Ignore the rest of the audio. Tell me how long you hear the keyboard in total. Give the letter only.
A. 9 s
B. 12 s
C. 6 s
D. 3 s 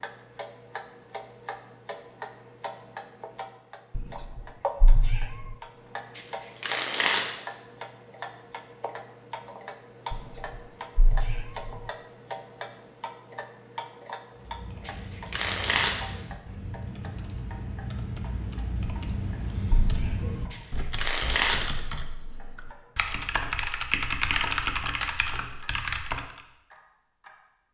B.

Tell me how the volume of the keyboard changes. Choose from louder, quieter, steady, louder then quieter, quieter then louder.
louder.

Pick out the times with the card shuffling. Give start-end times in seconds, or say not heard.
6.2-7.3, 14.8-16.1, 20.5-21.8.